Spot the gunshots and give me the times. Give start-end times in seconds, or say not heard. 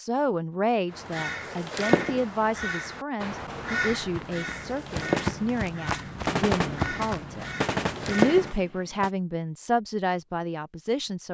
5.0-9.1.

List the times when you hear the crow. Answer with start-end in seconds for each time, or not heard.
0.9-8.6.